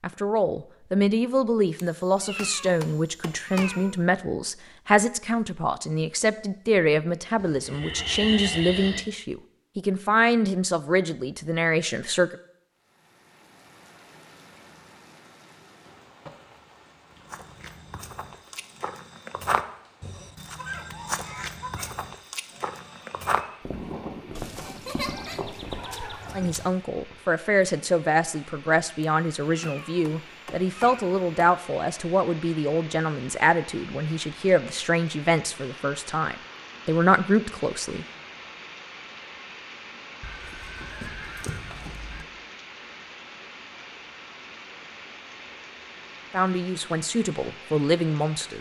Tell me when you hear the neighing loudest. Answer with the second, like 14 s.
8 s.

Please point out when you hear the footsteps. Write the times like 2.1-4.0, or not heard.
17.1-27.2.